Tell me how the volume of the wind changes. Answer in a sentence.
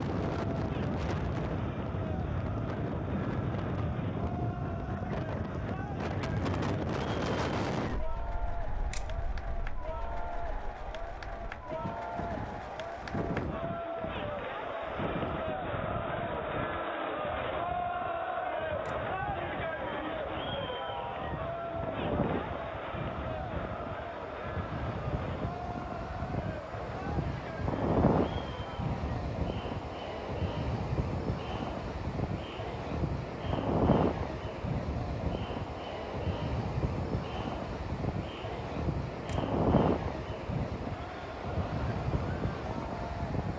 The volume of the wind goes down, then up.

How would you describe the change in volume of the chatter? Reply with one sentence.
The loudness of the chatter goes up, then down.